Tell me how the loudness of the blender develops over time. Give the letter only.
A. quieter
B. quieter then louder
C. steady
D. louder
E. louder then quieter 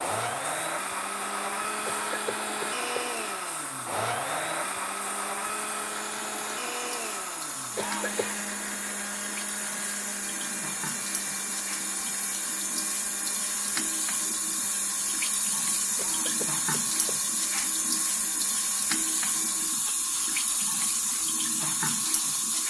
A.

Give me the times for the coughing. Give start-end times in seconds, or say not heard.
1.9-3.1, 7.8-8.3, 15.9-17.2.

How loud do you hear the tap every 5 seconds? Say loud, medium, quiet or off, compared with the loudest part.
quiet, medium, loud, loud, loud.